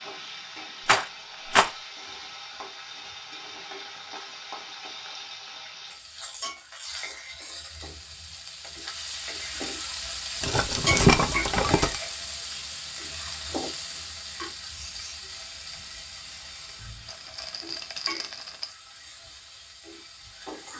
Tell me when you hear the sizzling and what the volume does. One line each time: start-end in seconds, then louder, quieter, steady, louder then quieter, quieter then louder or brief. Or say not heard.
0.0-20.7 louder then quieter.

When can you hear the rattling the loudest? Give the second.
11 s.